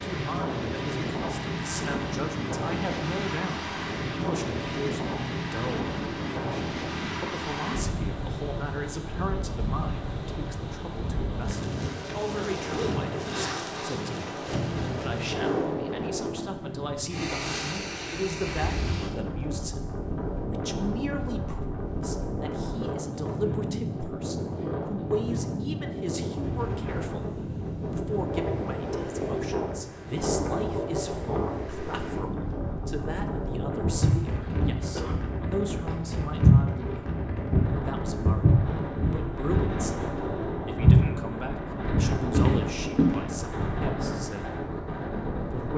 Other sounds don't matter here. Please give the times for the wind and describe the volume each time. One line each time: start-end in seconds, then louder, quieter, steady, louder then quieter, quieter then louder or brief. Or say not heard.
0.0-45.7 steady.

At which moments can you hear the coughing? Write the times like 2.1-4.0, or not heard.
34.4-35.2.